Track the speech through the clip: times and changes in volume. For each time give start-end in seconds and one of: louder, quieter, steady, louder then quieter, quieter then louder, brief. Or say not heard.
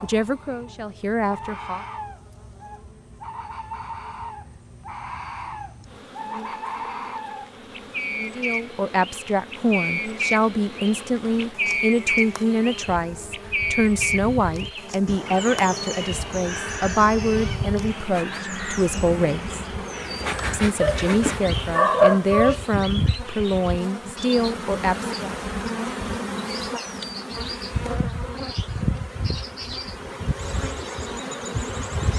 0.0-1.9 brief
8.3-19.6 steady
20.4-25.3 steady.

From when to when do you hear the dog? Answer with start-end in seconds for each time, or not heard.
20.8-22.6.